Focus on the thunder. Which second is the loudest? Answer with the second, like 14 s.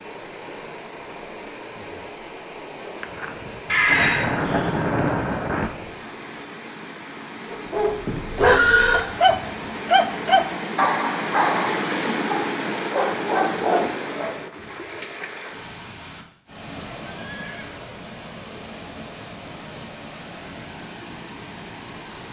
5 s.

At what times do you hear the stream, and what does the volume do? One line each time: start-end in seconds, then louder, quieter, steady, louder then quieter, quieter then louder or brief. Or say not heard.
0.0-22.2 louder then quieter.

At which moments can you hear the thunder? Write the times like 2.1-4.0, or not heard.
3.0-5.7.